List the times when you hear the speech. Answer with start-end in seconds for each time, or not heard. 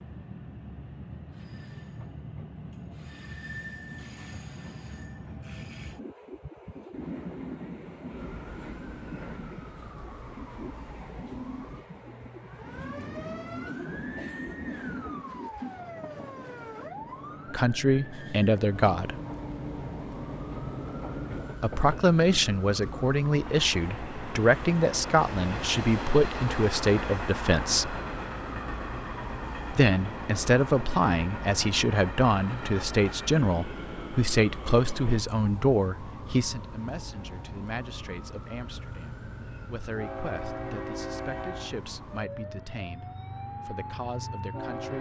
17.5-19.1, 21.6-28.0, 29.7-43.0, 43.6-44.9.